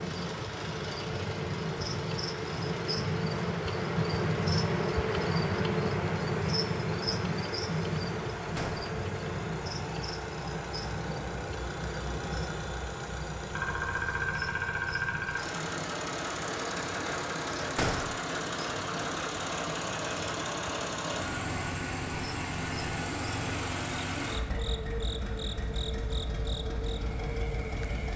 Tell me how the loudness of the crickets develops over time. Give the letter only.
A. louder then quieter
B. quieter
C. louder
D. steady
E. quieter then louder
B.